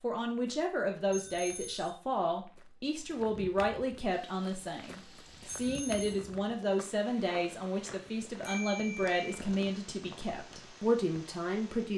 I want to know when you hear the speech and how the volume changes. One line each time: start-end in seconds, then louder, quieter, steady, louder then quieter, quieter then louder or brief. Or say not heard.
0.0-11.9 steady.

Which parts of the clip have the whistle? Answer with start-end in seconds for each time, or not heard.
not heard.